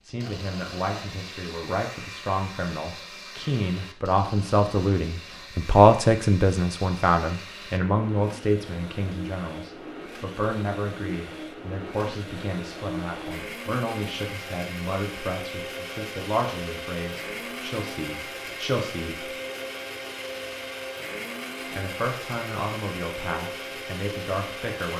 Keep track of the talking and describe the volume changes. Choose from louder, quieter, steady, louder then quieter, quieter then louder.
louder then quieter.